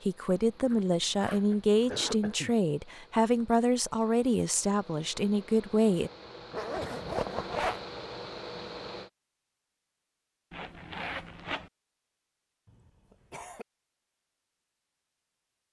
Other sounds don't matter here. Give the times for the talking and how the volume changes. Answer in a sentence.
The talking can be heard from 0.0 to 6.1 s, at a steady volume.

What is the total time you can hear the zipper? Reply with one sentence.
The zipper can be heard for 4 seconds in total.